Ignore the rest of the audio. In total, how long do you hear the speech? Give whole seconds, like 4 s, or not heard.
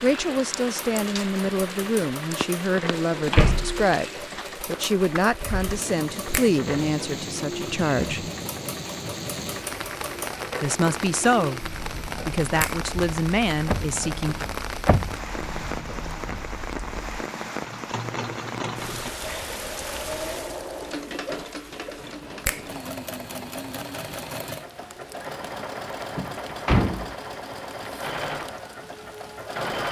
12 s.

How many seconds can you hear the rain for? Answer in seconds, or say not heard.
30 s.